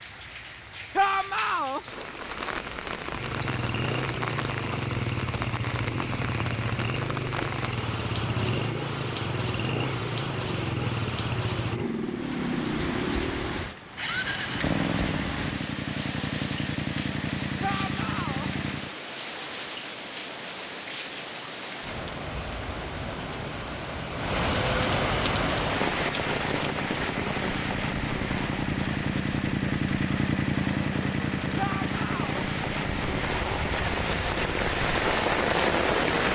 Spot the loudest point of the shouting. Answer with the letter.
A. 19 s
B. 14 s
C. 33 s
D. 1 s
D.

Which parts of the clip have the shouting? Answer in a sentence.
You can hear the shouting from 0.9 to 1.8 s, from 17.6 to 18.5 s and from 31.6 to 32.4 s.